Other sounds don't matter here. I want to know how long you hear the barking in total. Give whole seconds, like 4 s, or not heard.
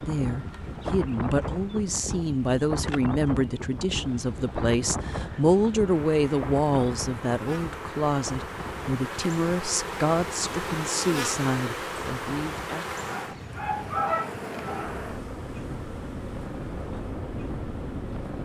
2 s.